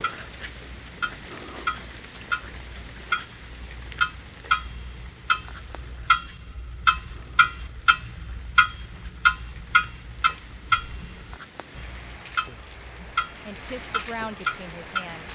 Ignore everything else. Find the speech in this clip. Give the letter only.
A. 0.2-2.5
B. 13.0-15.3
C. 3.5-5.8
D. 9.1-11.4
B.